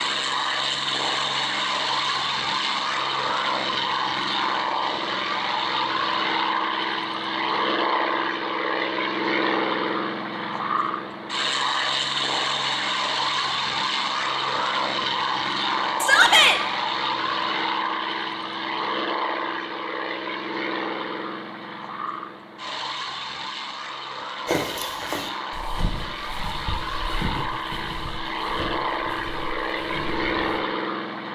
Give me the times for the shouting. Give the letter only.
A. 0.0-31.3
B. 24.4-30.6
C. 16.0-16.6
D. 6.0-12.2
C.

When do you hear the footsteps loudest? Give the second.
25 s.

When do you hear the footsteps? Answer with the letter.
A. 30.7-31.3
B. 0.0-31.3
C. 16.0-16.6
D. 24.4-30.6
D.